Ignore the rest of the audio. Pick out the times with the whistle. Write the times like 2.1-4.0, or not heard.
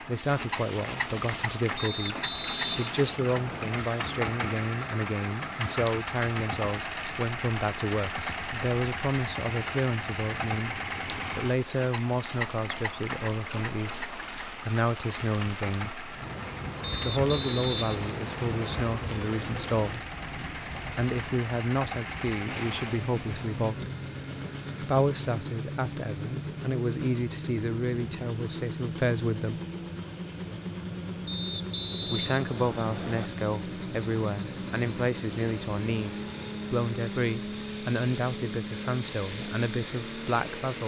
1.8-3.8, 16.8-18.9, 31.2-33.3.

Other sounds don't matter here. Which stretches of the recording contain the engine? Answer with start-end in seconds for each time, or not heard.
0.0-40.8.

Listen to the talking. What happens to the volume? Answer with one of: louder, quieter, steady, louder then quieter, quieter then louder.
steady.